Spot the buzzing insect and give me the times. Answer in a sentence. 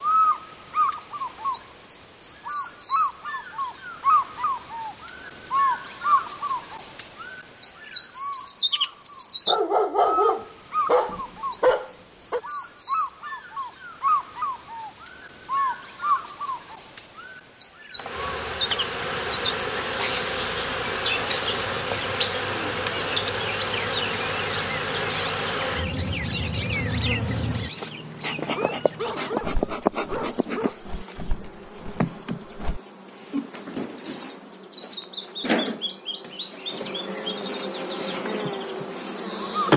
You can hear the buzzing insect from 17.9 to 39.7 s.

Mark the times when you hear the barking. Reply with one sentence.
The barking can be heard from 9.4 to 12.4 s and from 28.4 to 30.8 s.